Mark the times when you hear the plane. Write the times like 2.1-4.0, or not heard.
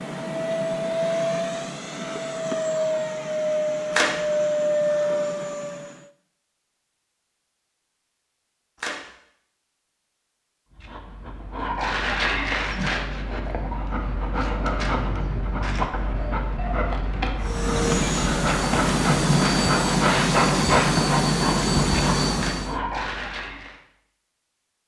0.0-6.0, 17.4-22.8.